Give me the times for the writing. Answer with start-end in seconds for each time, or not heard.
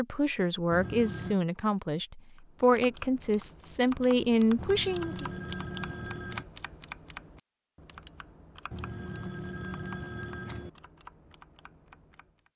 not heard.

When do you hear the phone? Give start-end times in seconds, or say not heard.
0.7-1.4, 4.5-6.5, 8.7-10.7.